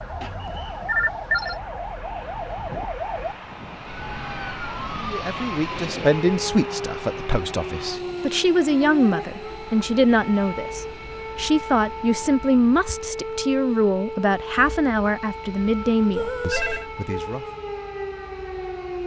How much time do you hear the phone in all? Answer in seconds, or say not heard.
2 s.